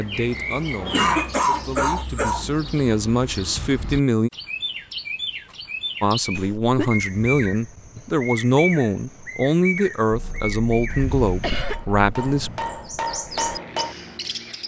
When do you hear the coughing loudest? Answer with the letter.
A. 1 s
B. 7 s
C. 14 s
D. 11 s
A.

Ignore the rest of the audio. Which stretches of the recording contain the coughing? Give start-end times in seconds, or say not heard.
0.9-2.5, 6.3-7.0, 10.1-11.9.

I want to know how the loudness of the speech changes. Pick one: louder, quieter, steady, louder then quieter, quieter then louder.
louder.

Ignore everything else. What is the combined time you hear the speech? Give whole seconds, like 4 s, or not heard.
11 s.